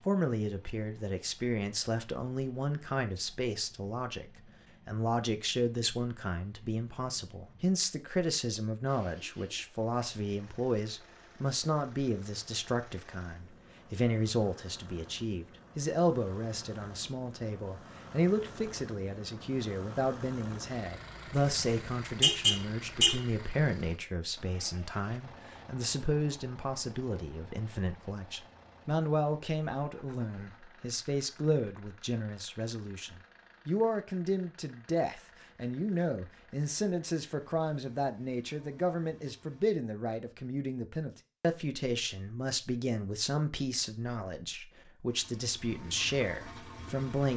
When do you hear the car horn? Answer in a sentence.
You can hear the car horn from 21.4 to 23.2 s.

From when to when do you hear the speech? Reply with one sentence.
You can hear the speech from 0.1 to 47.3 s.